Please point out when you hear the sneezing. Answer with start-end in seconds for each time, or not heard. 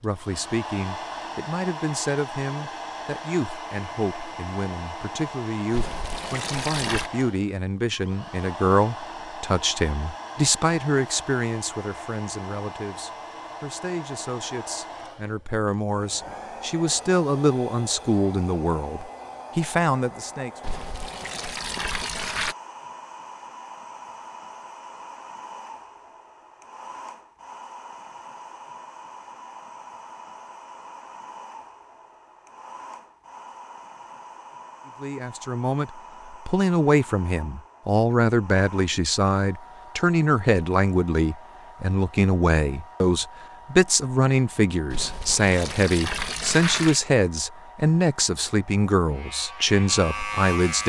not heard.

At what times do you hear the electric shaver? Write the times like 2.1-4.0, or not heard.
49.1-50.8.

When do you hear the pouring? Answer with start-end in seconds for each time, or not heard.
5.7-7.1, 20.6-22.6, 44.9-47.0.